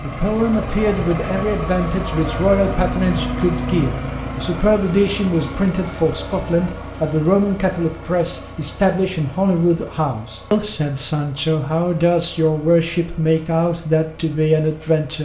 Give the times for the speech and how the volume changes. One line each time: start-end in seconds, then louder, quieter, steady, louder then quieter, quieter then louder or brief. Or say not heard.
0.0-15.2 steady.